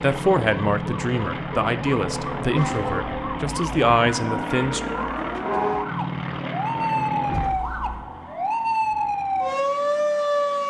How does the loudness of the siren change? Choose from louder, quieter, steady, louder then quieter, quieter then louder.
louder.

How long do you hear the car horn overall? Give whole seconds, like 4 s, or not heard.
2 s.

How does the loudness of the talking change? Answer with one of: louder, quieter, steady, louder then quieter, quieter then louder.
quieter then louder.